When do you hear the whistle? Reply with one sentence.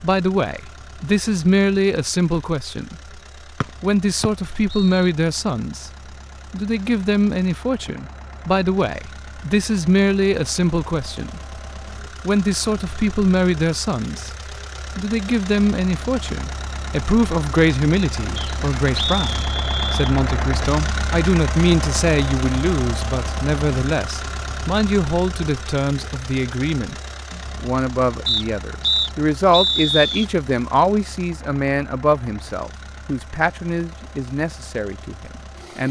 You can hear the whistle from 3.6 to 5.1 s, from 18.4 to 20.1 s and from 28.2 to 30.2 s.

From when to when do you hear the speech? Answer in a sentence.
You can hear the speech from 0.0 to 3.0 s, from 3.8 to 5.9 s, from 6.5 to 11.6 s, from 12.2 to 14.3 s and from 14.9 to 35.8 s.